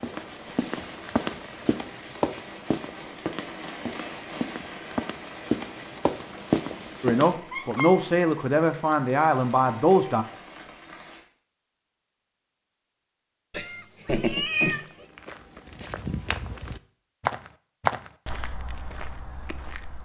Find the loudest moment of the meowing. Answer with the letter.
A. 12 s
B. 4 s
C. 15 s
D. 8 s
C.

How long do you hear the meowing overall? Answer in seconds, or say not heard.
2 s.